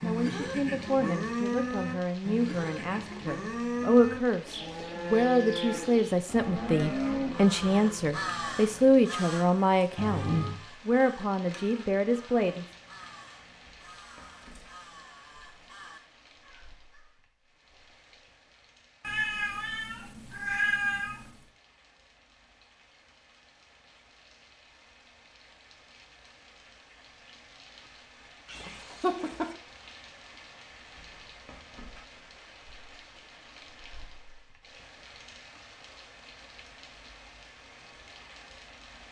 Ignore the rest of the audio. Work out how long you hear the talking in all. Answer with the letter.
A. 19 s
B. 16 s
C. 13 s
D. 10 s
C.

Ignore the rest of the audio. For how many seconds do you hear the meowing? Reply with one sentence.
You can hear the meowing for 4 seconds altogether.